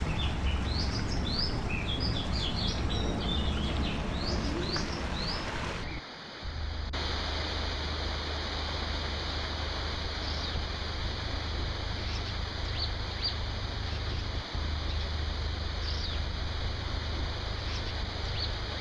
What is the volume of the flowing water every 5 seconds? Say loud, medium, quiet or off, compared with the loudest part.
medium, loud, loud, loud.